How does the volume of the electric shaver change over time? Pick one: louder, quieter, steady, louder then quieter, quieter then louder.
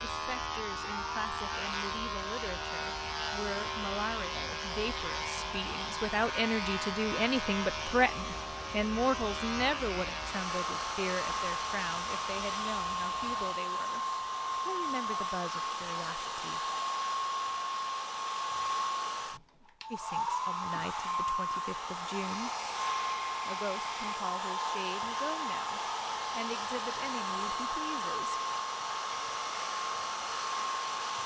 quieter.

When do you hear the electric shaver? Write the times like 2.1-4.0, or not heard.
0.0-13.6.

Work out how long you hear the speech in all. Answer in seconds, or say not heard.
24 s.